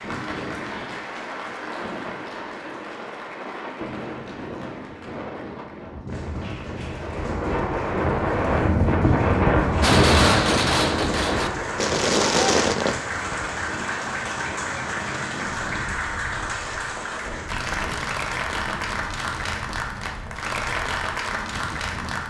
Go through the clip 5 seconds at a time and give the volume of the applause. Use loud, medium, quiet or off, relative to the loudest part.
medium, quiet, loud, loud, loud.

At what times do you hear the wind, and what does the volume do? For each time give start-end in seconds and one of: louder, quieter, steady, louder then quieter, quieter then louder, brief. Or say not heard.
0.0-22.2 louder then quieter.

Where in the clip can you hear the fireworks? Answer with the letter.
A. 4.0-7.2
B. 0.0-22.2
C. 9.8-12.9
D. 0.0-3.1
C.